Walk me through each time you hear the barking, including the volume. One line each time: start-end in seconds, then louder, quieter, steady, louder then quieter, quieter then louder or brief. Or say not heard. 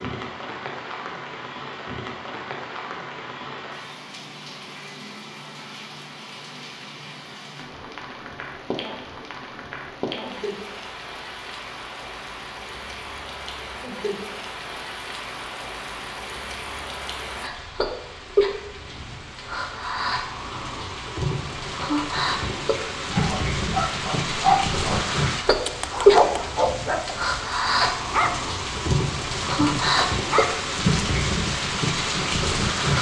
23.1-30.6 quieter.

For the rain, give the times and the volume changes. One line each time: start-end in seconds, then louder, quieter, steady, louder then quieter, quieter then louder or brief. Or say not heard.
0.0-32.9 louder.